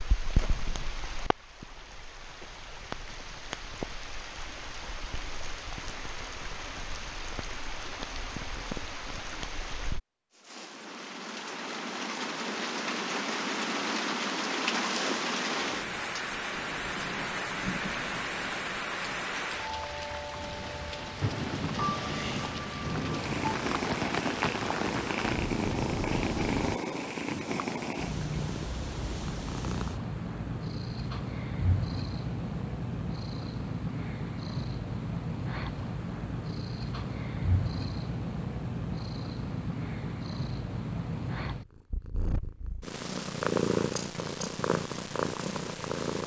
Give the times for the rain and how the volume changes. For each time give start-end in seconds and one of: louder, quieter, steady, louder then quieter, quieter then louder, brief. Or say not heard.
0.0-26.8 louder.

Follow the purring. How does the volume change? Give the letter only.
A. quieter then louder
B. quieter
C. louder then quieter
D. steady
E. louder
D.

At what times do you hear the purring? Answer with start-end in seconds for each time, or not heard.
23.0-46.2.